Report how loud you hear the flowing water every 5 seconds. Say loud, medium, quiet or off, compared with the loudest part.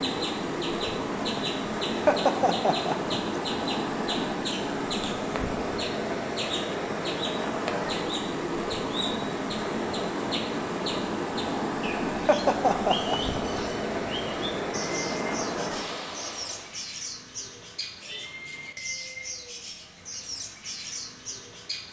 loud, loud, loud, loud, off.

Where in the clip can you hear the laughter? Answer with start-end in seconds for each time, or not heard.
1.9-3.1, 12.2-13.6.